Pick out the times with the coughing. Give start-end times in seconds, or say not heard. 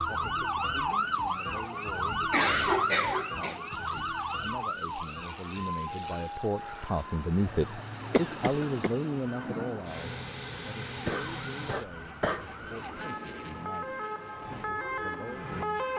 2.3-3.5, 8.1-8.9, 11.1-12.4.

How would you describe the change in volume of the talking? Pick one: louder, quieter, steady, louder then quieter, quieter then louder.
louder then quieter.